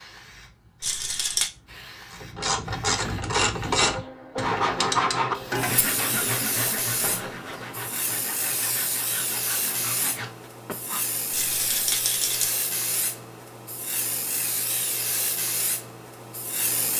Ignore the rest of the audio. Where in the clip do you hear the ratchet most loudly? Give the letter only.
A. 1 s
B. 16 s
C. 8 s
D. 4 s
D.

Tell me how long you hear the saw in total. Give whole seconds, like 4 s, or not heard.
7 s.